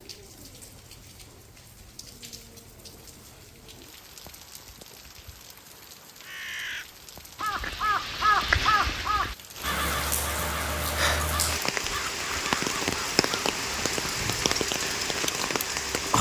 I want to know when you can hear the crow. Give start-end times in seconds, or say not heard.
6.2-14.4.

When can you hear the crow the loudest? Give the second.
8 s.